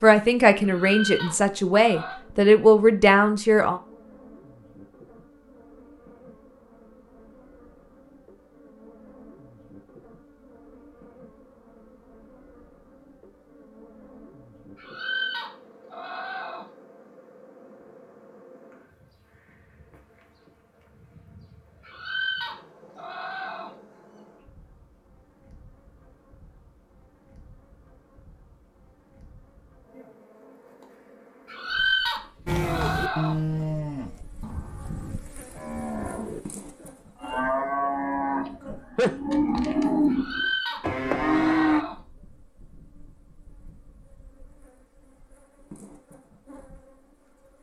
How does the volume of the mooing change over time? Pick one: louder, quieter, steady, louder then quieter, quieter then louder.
quieter then louder.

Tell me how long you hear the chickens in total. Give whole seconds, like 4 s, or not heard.
9 s.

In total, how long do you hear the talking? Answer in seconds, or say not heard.
4 s.